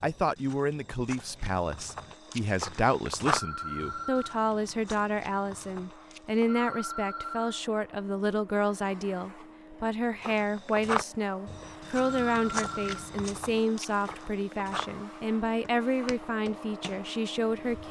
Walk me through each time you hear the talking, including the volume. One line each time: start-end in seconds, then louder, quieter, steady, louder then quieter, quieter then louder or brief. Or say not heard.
0.0-17.8 steady.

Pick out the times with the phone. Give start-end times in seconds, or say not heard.
3.2-4.4, 6.5-7.6, 12.0-13.1.